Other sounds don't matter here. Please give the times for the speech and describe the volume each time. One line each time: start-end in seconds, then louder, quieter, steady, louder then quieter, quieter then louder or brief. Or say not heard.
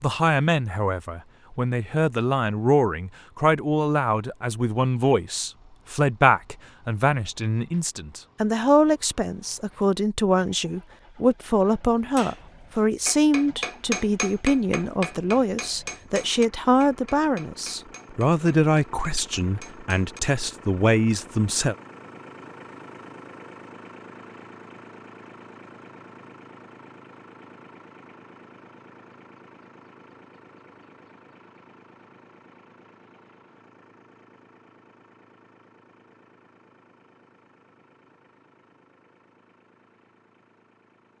0.0-21.8 steady.